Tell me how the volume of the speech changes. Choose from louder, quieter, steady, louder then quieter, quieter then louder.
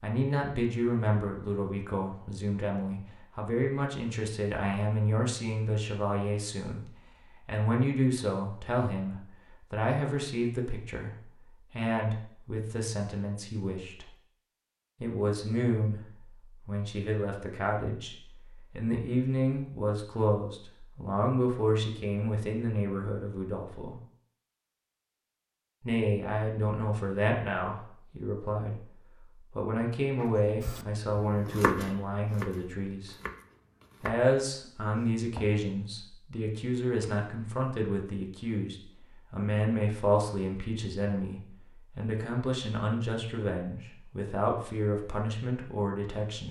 steady.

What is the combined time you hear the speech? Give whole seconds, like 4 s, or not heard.
43 s.